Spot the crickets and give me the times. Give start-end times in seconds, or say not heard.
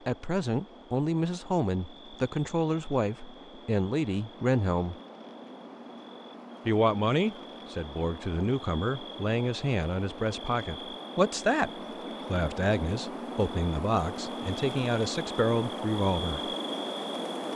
0.0-17.5.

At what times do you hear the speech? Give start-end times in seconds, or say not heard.
0.1-5.0, 6.7-16.6.